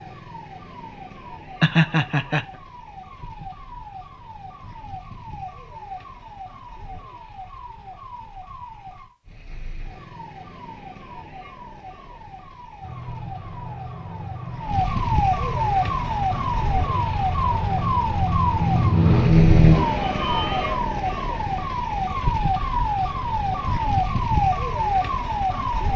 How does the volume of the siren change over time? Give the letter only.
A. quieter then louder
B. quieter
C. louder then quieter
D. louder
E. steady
D.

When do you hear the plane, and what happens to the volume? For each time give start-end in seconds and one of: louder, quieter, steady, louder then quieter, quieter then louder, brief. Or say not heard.
12.8-20.8 louder.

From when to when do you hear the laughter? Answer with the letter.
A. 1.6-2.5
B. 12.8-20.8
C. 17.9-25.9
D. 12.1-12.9
A.